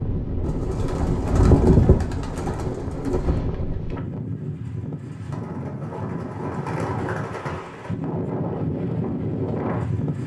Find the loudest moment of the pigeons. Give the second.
2 s.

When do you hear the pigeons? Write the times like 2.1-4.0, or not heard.
0.4-3.4, 5.3-7.9.